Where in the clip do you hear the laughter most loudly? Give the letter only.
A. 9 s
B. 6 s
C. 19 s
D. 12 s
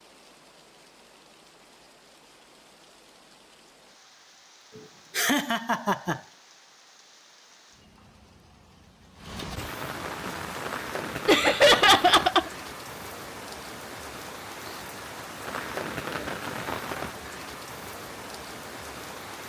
D.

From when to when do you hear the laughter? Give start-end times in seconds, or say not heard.
5.2-6.2, 11.2-12.5.